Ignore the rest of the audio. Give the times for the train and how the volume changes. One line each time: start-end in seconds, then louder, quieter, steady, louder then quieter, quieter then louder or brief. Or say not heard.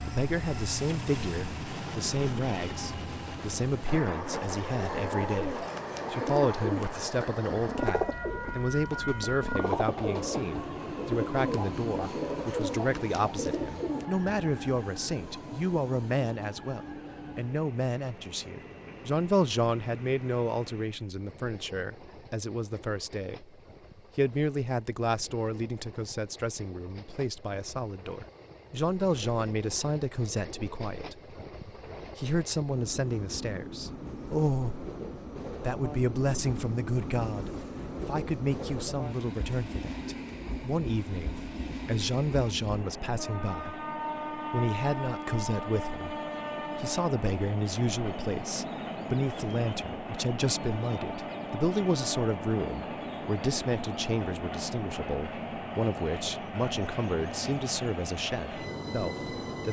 0.0-59.6 quieter then louder.